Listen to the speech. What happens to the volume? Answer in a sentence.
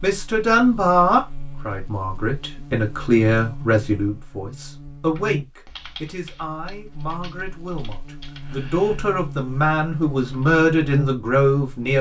The loudness of the speech goes down, then up.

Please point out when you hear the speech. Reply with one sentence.
The speech can be heard from 0.0 to 11.9 s.